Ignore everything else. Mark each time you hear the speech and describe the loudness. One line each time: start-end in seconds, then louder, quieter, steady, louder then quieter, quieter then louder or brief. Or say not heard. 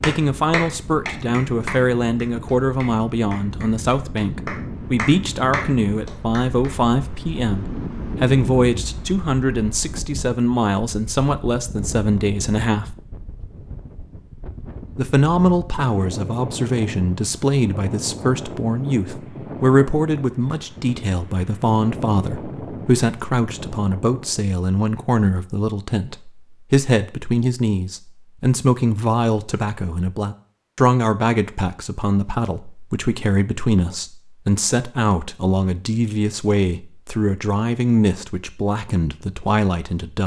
0.0-12.9 steady
14.9-40.2 steady.